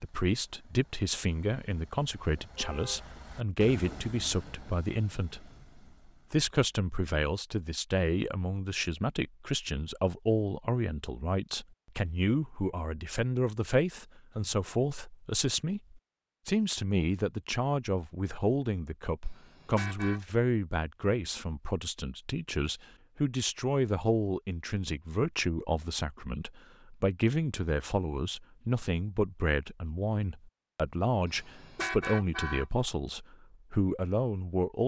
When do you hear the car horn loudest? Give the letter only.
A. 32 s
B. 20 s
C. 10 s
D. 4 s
A.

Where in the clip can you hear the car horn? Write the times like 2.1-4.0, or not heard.
2.4-3.0, 19.2-20.2, 31.2-32.6.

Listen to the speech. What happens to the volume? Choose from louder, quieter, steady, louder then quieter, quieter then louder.
steady.